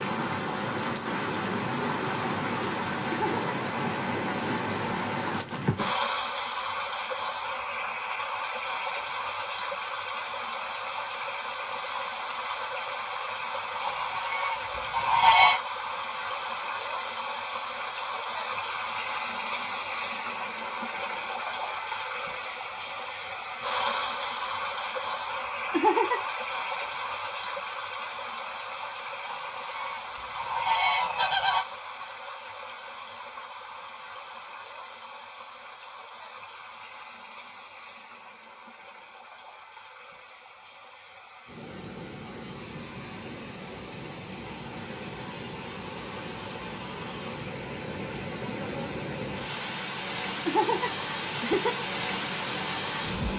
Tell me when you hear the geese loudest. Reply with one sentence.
The volume of the geese peaks at 15 seconds.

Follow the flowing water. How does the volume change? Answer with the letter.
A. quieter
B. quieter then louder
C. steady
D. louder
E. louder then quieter
B.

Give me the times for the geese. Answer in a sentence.
You can hear the geese from 13.8 to 15.6 s and from 29.2 to 31.6 s.